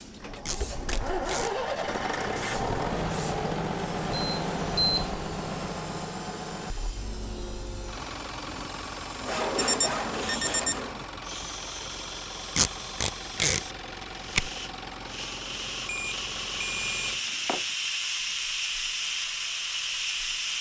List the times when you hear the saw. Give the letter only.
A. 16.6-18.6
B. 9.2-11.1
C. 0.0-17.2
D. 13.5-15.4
B.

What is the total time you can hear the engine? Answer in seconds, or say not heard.
17 s.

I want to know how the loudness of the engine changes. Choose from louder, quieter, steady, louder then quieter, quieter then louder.
quieter.